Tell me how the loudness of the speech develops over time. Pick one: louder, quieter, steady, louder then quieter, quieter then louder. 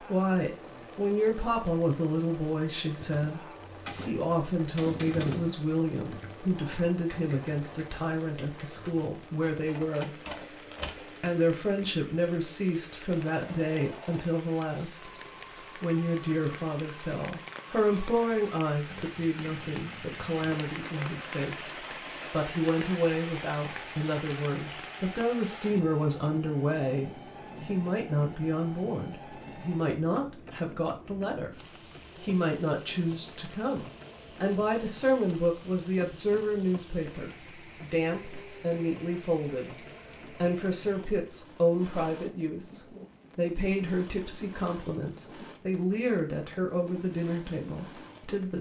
steady.